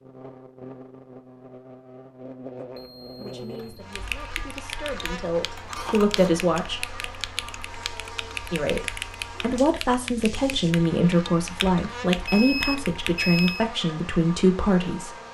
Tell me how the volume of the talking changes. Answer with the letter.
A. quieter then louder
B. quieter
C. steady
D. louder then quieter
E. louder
E.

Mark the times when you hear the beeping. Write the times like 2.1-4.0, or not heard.
2.8-3.9, 12.2-13.7.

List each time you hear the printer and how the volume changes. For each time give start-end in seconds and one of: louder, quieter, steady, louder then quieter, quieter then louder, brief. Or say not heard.
not heard.